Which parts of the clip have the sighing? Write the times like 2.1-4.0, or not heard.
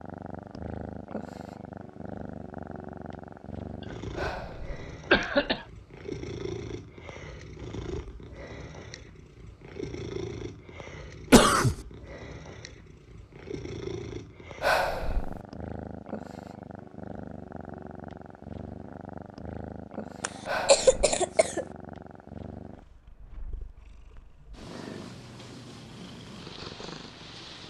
4.2-4.8, 14.6-15.4, 20.4-21.2.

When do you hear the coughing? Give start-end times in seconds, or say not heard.
5.1-5.6, 11.3-11.8, 20.2-21.6.